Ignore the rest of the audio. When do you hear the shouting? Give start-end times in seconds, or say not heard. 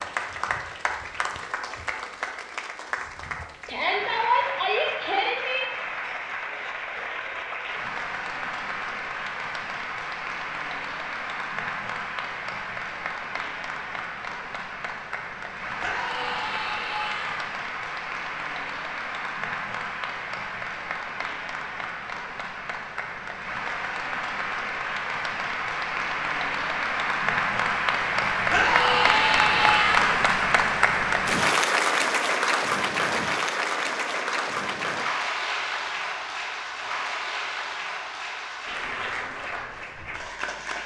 3.6-5.7, 15.8-17.4, 28.5-30.1.